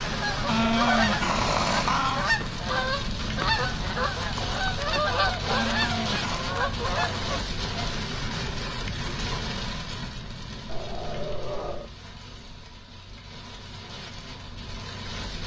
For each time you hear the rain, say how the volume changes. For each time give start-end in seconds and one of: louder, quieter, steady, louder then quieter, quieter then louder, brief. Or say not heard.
0.0-15.4 quieter.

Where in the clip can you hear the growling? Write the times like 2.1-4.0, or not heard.
0.5-2.2, 5.5-6.5, 10.7-11.9.